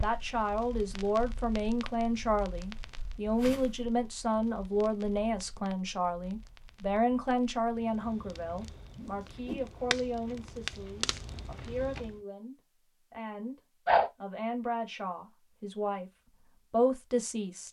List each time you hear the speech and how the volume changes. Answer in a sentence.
The speech can be heard from 0.0 to 17.6 s, getting quieter then louder.